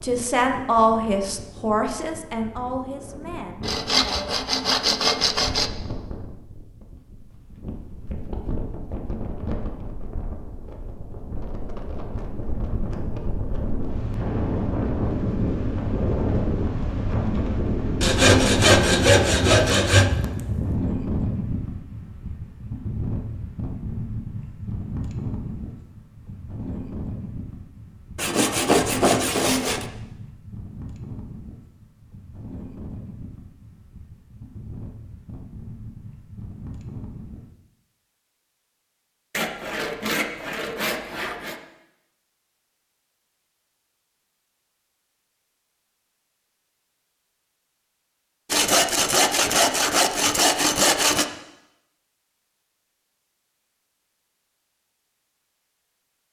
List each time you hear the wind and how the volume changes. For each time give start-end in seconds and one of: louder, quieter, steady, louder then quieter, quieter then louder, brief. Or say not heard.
0.0-37.5 louder then quieter.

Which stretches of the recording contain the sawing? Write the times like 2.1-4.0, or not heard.
3.6-5.7, 18.0-20.1, 28.1-29.9, 39.3-41.5, 48.5-51.2.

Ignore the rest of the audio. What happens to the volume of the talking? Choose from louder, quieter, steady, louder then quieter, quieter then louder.
quieter.